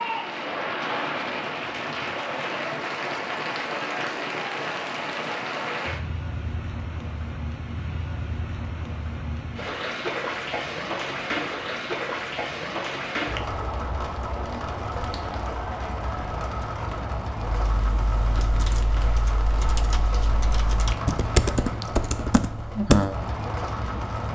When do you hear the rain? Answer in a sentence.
You can hear the rain from 0.0 to 24.3 s.